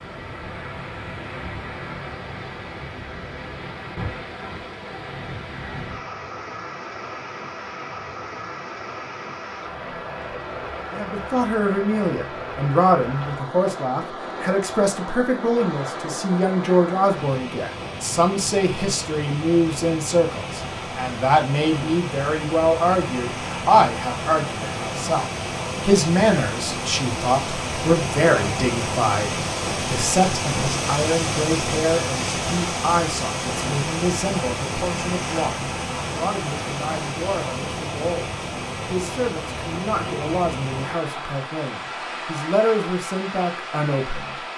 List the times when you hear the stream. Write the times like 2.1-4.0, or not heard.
0.0-44.5.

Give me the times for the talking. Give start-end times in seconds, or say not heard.
10.9-44.5.